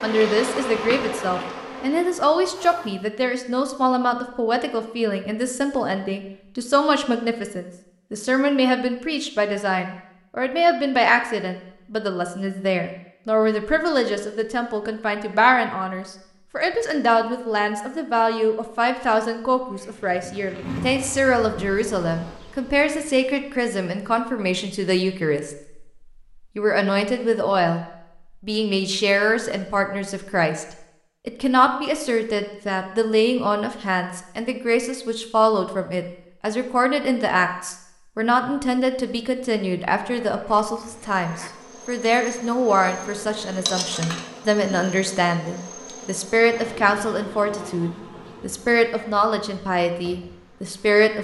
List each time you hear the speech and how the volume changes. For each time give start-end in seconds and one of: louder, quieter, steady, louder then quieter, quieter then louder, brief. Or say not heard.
0.0-51.1 steady.